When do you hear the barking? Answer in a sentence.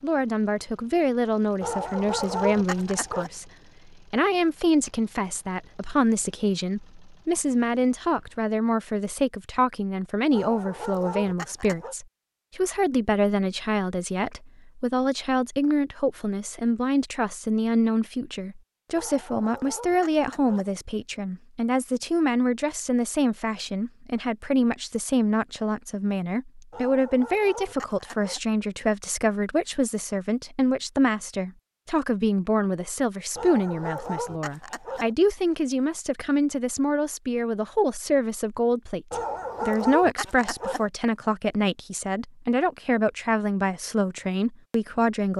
The barking can be heard from 1.6 to 3.3 s, from 10.3 to 11.9 s, from 18.9 to 20.8 s, from 26.7 to 28.4 s, from 33.4 to 35.1 s and from 39.1 to 40.9 s.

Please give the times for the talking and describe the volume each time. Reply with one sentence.
You can hear the talking from 0.0 to 45.3 s, at a steady volume.